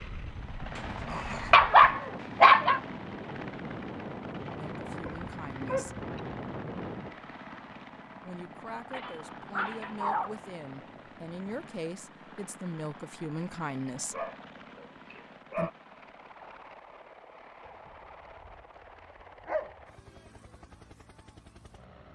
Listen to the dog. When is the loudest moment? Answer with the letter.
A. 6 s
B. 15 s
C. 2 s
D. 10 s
C.